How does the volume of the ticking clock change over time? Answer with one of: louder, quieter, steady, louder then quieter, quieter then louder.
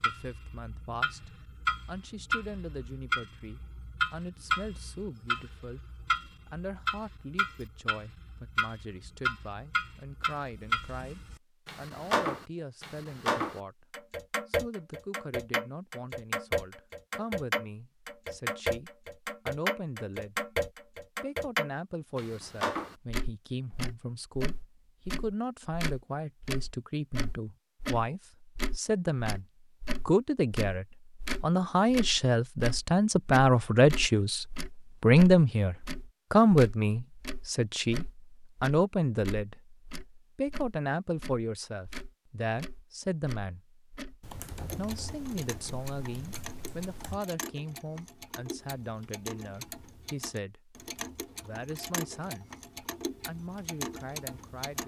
quieter.